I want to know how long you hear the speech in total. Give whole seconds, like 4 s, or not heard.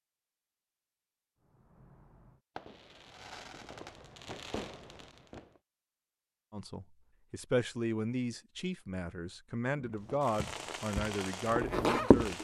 6 s.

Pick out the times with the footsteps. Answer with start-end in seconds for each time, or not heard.
9.8-12.3.